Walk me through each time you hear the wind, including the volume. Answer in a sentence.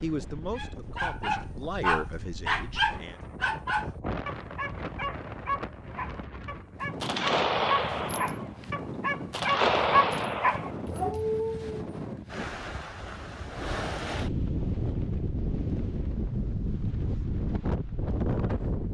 You can hear the wind from 0.0 to 18.9 s, getting louder.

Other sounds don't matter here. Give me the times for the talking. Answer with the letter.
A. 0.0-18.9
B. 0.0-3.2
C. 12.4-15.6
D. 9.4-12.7
B.